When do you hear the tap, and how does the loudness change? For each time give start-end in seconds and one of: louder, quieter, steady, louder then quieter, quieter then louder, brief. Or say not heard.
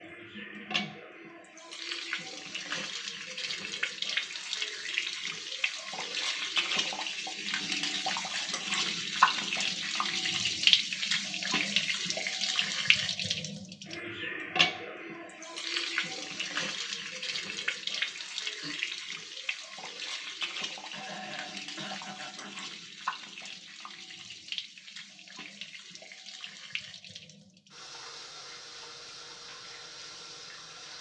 0.0-30.9 louder then quieter.